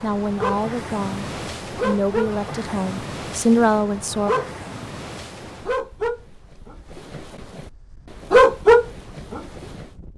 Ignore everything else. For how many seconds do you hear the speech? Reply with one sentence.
You can hear the speech for 4 seconds altogether.